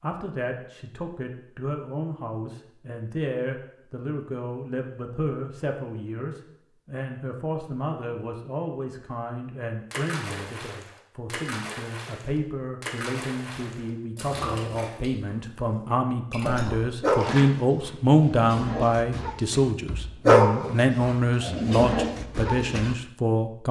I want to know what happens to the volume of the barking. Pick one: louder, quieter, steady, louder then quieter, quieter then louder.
louder then quieter.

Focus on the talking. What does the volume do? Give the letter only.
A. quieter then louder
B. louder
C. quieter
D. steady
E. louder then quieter
B.